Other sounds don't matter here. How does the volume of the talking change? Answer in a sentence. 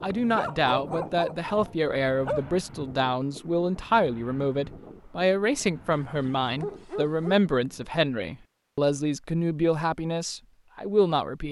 The loudness of the talking stays about the same.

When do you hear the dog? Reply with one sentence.
You can hear the dog from 0.1 to 2.6 s and from 5.9 to 7.4 s.